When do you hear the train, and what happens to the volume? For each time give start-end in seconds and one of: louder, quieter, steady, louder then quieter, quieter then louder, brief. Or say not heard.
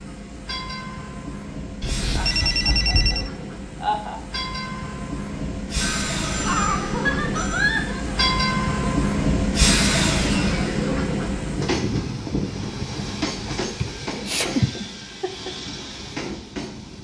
0.0-17.0 louder then quieter.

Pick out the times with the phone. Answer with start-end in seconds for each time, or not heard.
1.8-3.3, 5.8-7.7, 13.7-14.7.